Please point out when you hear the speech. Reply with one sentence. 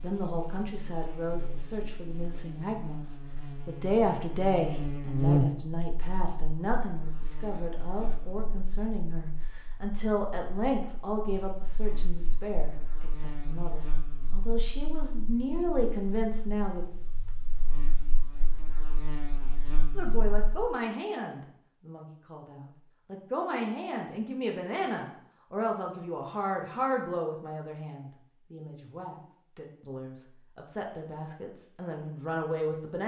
You can hear the speech from 0.0 to 16.9 s and from 19.9 to 33.0 s.